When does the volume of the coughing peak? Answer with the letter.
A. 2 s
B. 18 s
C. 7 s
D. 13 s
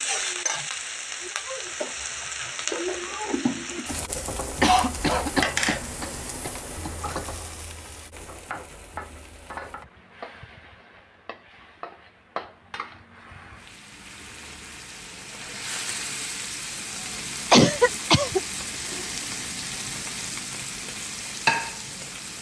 B.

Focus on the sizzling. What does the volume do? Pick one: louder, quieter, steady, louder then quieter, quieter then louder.
quieter then louder.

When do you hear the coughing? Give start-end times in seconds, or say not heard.
4.6-7.2, 17.5-18.4.